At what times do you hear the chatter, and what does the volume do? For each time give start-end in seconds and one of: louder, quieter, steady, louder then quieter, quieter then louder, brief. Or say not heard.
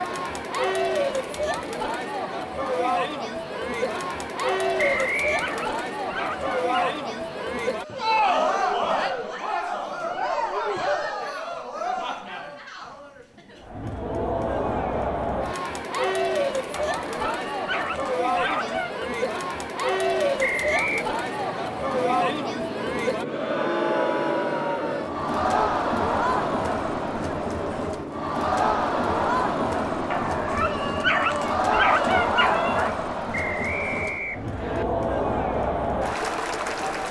0.0-37.0 steady.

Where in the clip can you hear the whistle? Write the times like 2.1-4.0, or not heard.
4.8-5.5, 20.4-21.1, 33.3-34.9.